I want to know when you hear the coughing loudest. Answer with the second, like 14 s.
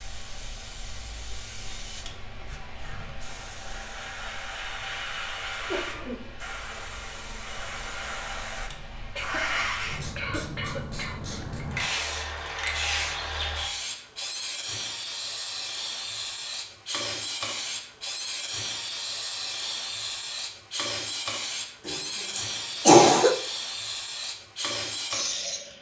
23 s.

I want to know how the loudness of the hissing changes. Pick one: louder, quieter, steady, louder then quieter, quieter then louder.
louder.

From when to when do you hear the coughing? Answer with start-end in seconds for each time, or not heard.
5.5-6.3, 9.2-11.4, 21.9-23.4.